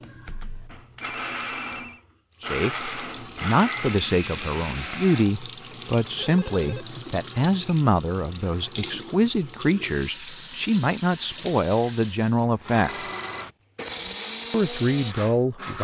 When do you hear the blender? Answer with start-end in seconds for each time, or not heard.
0.0-5.3, 12.6-15.7.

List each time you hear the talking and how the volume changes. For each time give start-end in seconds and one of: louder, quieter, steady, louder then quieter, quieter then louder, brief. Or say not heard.
2.4-12.9 steady
14.5-15.7 brief.